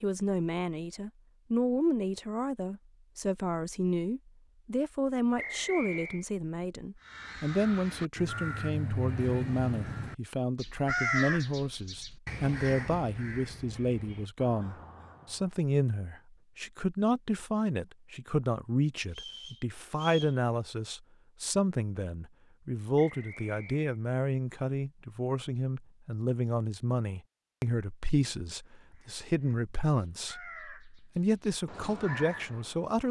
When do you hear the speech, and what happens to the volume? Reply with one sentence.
You can hear the speech from 0.0 to 33.0 s, at a steady volume.